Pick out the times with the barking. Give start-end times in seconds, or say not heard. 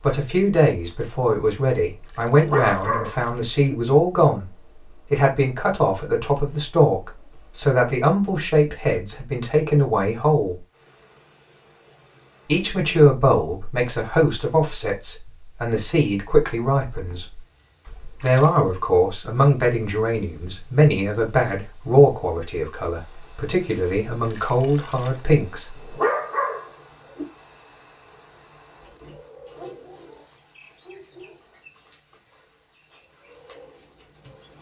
2.3-3.8, 25.8-27.2.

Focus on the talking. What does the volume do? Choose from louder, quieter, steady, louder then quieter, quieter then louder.
steady.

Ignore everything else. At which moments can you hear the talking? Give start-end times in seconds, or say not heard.
0.0-10.6, 12.4-17.4, 18.2-25.9.